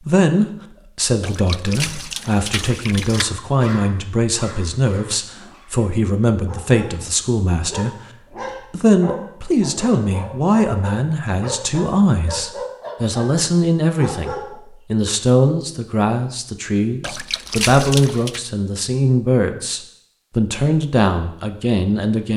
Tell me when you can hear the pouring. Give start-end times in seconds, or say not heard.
1.2-3.2, 17.0-18.4.